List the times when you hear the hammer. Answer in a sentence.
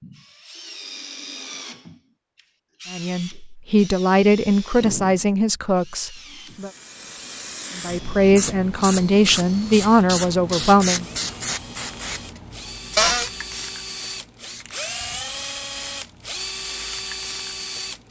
You can't hear the hammer here.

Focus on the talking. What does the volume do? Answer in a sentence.
The volume of the talking stays about the same.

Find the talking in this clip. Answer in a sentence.
The talking can be heard from 2.9 to 6.7 s and from 7.8 to 11.1 s.